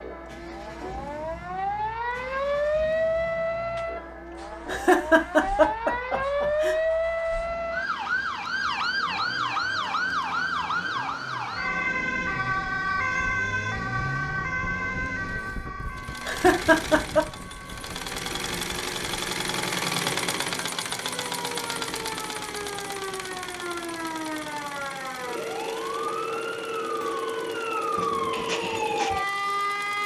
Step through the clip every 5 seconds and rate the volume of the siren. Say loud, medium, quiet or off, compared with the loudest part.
loud, loud, loud, medium, medium, loud.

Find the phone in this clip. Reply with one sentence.
The phone can't be heard in this clip.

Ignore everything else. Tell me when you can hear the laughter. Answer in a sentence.
You can hear the laughter from 4.7 to 6.8 s and from 16.2 to 17.2 s.